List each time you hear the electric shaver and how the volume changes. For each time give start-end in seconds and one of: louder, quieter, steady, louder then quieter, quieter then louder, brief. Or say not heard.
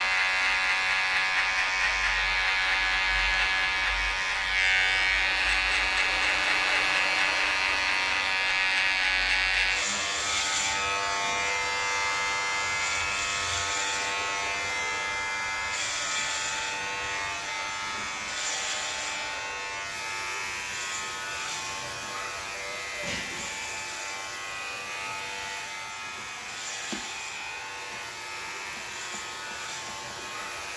0.0-30.7 quieter.